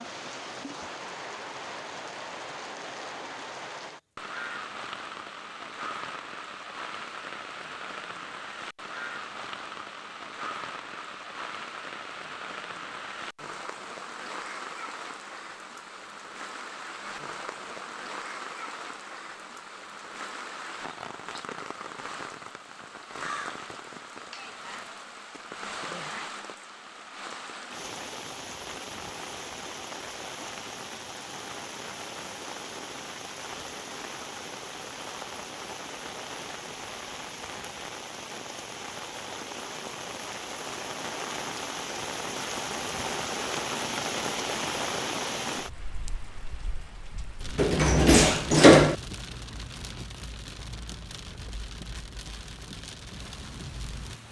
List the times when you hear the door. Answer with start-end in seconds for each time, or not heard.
47.5-49.0.